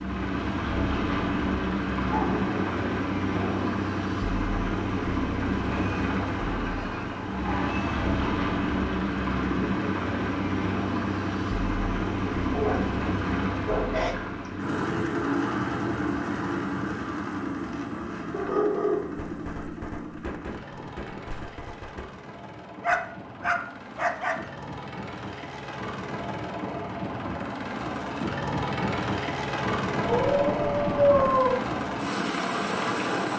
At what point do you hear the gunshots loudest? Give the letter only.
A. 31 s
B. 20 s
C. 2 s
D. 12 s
B.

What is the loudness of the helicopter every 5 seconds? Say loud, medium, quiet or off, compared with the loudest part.
loud, loud, loud, loud, quiet, loud, loud.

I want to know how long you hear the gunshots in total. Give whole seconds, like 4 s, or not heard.
3 s.